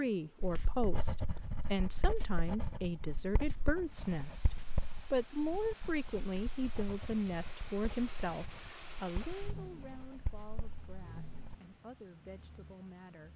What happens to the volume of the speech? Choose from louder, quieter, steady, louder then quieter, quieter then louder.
quieter.